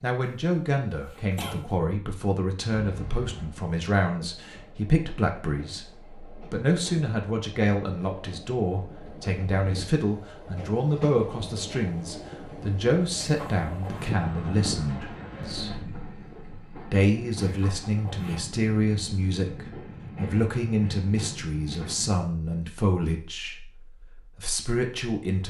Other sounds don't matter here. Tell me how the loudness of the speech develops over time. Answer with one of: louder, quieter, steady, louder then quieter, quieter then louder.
steady.